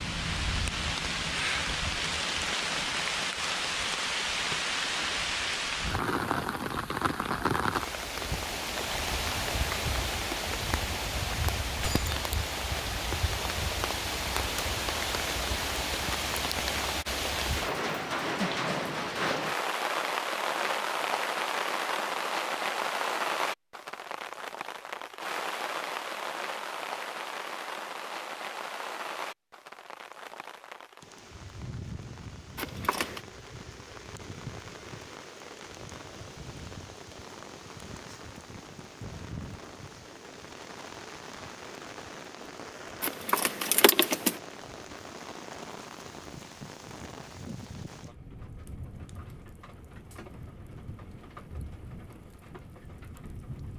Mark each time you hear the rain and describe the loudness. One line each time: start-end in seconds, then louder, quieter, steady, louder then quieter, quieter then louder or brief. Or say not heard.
0.0-53.7 quieter.